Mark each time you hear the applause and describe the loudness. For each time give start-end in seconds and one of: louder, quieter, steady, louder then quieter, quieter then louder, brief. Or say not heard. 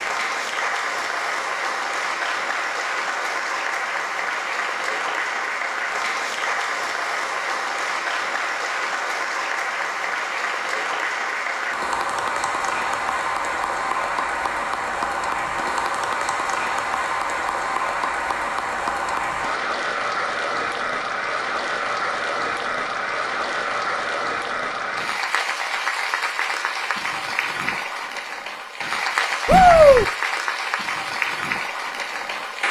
0.0-32.6 steady.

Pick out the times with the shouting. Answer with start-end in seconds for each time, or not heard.
29.4-30.1.